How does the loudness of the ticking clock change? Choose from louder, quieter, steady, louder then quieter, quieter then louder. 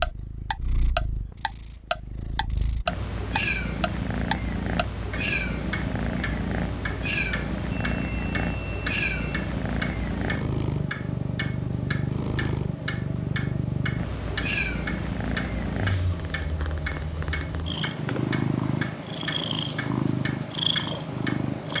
quieter.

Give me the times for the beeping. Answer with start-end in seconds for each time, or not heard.
7.7-9.5.